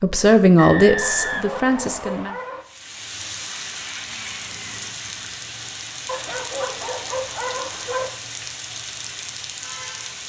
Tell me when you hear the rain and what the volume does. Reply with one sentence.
The rain can be heard from 2.6 to 10.2 s, at a steady volume.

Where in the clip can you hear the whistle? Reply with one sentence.
The whistle can be heard from 0.6 to 2.3 s.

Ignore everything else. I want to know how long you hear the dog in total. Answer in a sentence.
The dog can be heard for 4 seconds in total.